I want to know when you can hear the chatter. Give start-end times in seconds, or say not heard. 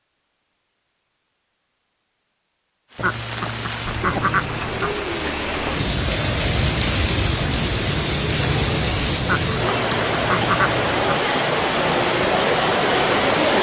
not heard.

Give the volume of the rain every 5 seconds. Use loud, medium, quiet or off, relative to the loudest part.
medium, loud, loud.